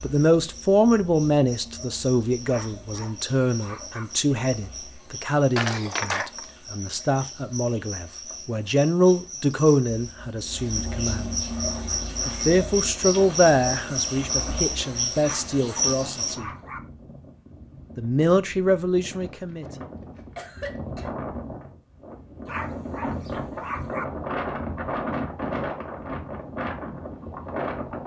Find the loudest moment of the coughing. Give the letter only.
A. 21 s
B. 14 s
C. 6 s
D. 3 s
C.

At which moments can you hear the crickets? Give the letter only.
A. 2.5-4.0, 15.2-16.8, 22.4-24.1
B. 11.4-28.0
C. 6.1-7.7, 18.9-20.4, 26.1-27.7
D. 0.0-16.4
D.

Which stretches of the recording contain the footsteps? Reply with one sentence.
The footsteps can't be heard in this clip.